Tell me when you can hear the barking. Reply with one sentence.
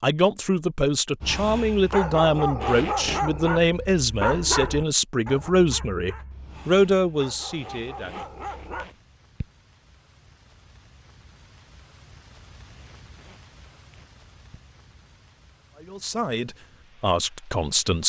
The barking can be heard from 1.2 to 8.9 s.